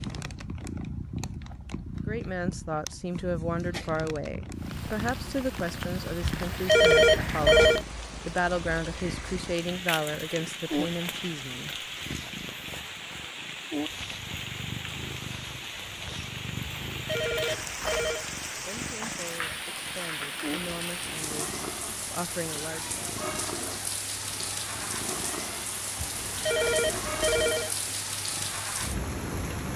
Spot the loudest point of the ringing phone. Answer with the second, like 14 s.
7 s.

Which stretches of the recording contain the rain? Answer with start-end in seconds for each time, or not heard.
4.5-29.7.